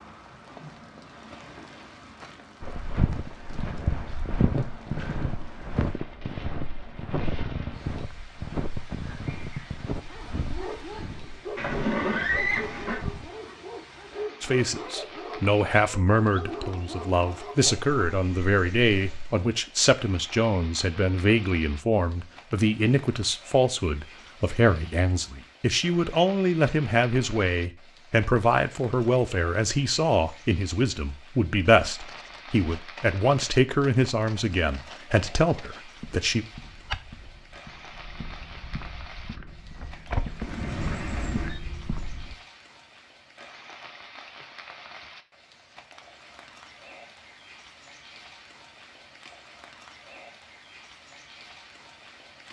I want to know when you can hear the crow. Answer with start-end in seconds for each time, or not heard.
not heard.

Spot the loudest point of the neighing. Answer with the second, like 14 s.
12 s.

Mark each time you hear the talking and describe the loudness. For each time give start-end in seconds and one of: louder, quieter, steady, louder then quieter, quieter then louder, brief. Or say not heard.
14.4-36.5 steady.